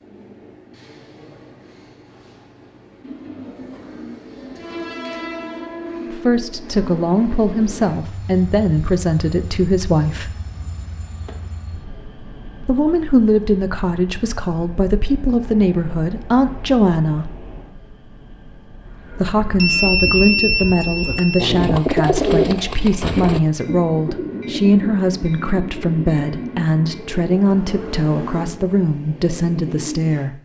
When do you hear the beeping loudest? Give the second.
20 s.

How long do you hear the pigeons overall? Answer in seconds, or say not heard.
11 s.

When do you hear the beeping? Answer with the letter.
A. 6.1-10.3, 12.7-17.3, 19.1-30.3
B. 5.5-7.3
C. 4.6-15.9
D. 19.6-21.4
D.